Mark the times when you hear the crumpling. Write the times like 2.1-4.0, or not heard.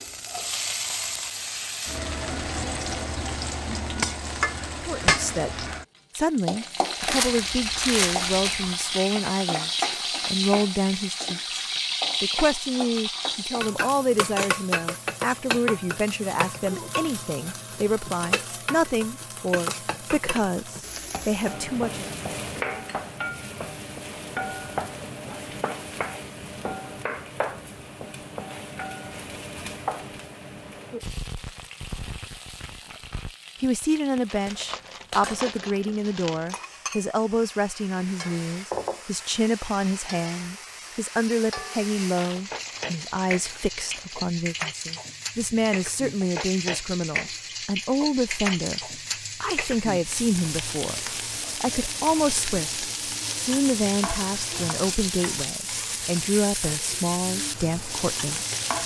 7.0-8.8, 34.2-36.6, 42.1-44.2.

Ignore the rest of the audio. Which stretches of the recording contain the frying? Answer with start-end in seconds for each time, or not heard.
0.0-58.8.